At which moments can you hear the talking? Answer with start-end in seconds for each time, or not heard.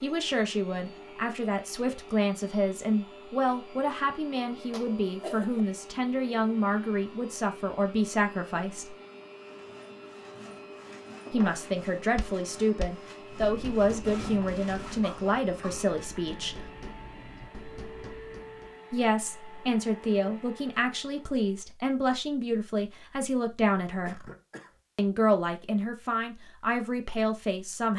0.0-8.9, 11.3-16.6, 18.9-24.2, 24.9-27.9.